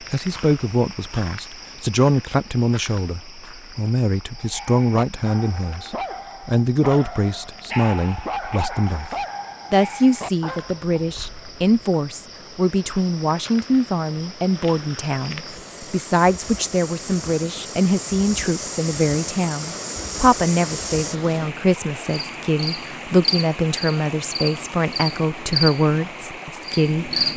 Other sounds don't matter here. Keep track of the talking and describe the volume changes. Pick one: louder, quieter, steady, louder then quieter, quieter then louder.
steady.